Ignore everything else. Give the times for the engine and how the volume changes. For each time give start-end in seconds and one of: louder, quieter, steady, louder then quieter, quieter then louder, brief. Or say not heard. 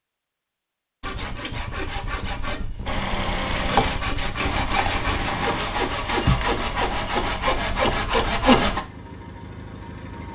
2.9-10.3 quieter.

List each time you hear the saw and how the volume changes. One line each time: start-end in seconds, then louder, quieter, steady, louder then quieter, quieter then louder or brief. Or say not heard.
1.0-8.8 louder.